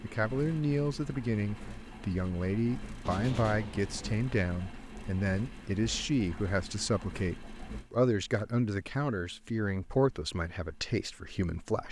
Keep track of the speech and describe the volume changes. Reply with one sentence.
The loudness of the speech stays about the same.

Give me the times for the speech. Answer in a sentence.
You can hear the speech from 0.0 to 11.8 s.